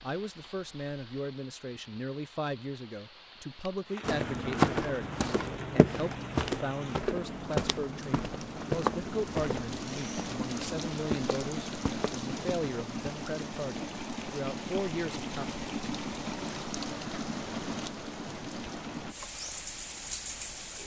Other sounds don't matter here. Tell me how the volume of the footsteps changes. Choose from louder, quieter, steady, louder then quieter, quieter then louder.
quieter.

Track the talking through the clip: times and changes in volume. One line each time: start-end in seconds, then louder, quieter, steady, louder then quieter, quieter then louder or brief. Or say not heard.
0.0-15.4 steady.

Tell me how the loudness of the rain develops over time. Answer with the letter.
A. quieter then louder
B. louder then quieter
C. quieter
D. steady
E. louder
E.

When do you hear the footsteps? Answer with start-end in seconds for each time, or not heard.
4.0-13.2.